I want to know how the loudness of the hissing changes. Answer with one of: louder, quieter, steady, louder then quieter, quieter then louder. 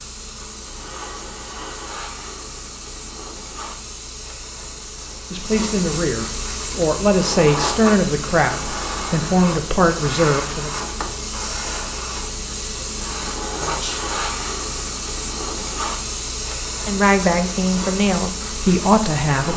louder.